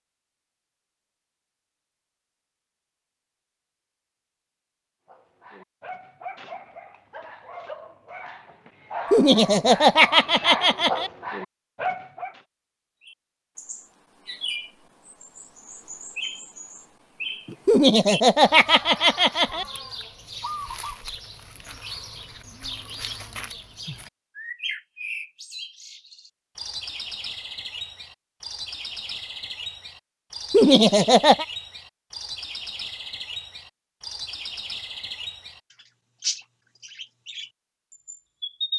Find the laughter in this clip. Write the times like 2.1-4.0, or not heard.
9.1-11.1, 17.6-19.6, 30.5-31.4.